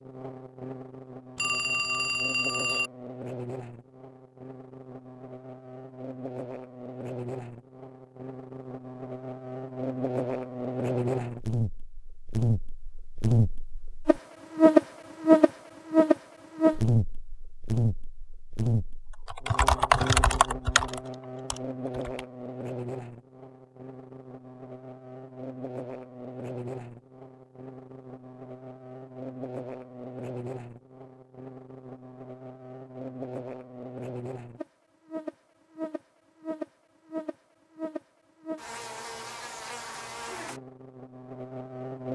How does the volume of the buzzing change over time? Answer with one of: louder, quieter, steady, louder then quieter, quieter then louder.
louder then quieter.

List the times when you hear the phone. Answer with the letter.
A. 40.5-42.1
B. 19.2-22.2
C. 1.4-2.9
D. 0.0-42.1
C.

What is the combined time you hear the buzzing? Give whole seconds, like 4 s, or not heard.
42 s.